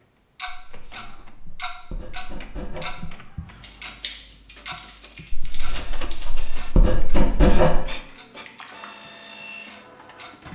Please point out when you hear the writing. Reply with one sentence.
You can hear the writing from 0.5 to 3.1 s and from 5.3 to 7.8 s.